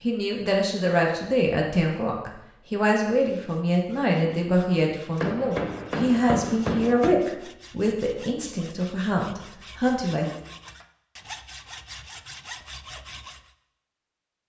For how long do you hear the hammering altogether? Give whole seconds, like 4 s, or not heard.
2 s.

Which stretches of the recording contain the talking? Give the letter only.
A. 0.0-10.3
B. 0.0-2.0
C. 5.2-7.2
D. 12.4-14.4
A.